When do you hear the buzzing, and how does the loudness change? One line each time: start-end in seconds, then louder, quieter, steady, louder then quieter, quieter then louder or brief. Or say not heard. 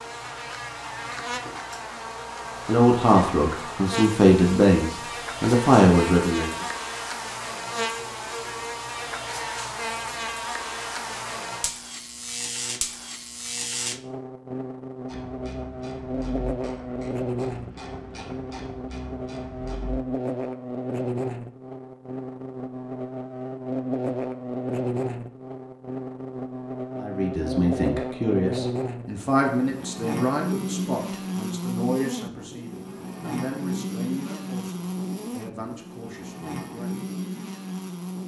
0.0-38.2 steady.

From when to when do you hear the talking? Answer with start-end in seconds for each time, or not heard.
2.6-6.5, 26.9-37.0.